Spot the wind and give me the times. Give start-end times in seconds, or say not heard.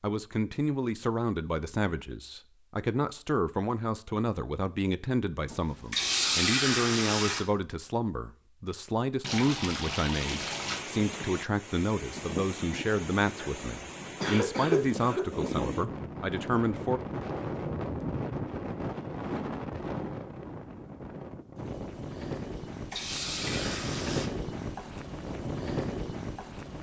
10.2-26.7.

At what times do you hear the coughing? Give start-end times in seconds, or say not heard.
13.3-15.2.